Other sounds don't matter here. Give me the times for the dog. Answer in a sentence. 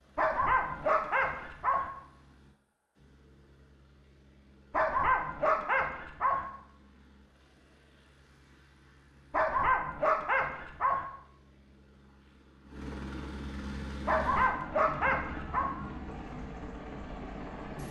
The dog can be heard from 0.1 to 1.9 s, from 4.7 to 6.5 s, from 9.3 to 11.1 s and from 14.1 to 15.7 s.